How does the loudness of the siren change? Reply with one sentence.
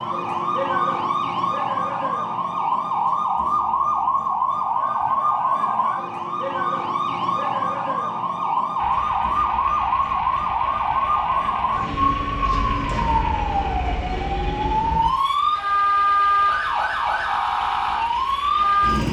The loudness of the siren stays about the same.